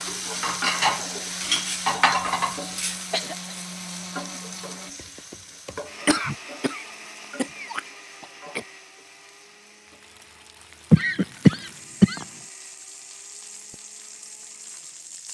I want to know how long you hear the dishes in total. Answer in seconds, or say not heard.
3 s.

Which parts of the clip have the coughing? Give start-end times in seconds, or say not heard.
2.9-3.5, 6.0-8.7, 10.9-12.2.